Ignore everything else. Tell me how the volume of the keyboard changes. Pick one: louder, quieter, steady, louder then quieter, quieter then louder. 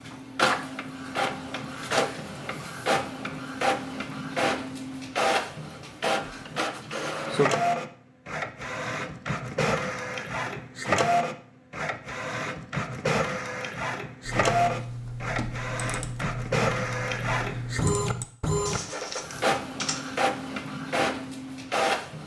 steady.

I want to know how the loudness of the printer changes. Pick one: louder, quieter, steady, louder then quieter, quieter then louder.
steady.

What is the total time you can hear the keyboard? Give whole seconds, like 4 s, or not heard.
6 s.